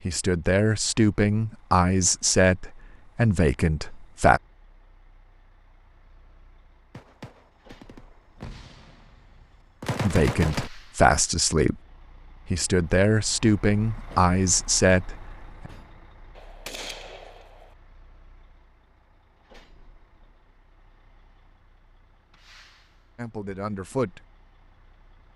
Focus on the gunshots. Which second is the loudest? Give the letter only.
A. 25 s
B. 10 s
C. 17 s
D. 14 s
B.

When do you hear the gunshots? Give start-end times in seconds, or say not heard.
7.0-9.2, 9.8-10.7, 16.4-17.8.